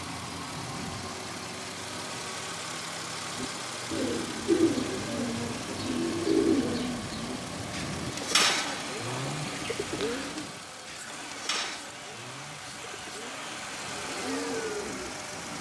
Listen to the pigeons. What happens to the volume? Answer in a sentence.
The volume of the pigeons goes down.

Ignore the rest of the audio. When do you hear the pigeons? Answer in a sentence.
The pigeons can be heard from 3.4 to 15.2 s.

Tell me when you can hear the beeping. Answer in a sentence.
You can't hear the beeping here.